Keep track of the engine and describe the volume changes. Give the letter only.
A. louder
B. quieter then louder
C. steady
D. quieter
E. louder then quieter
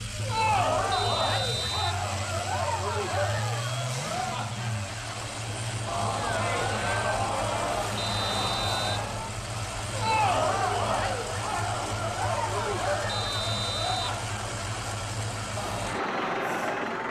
C.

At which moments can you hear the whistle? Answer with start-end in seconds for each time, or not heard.
0.9-1.9, 8.0-8.9, 13.1-14.1.